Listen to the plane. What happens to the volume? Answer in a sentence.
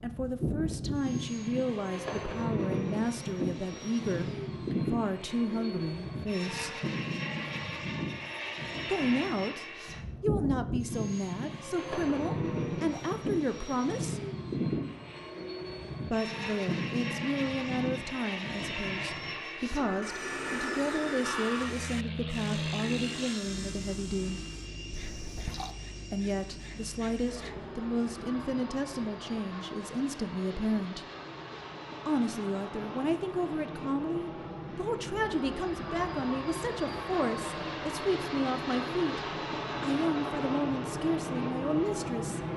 The volume of the plane goes down, then up.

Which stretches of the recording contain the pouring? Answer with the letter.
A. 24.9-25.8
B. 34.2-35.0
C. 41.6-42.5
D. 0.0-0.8
A.